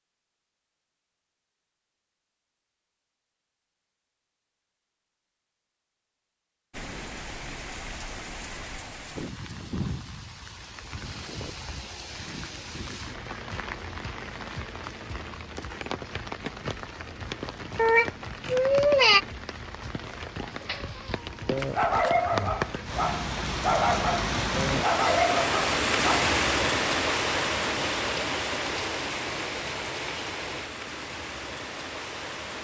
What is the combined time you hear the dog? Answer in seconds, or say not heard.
6 s.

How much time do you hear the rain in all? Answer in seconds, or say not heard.
26 s.